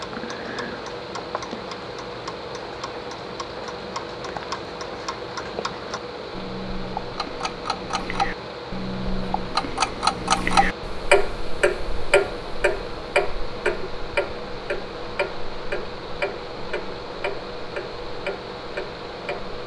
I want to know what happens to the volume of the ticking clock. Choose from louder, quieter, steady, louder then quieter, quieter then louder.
louder then quieter.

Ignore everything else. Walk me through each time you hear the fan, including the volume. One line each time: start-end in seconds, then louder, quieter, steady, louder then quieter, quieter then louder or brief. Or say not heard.
0.0-19.6 steady.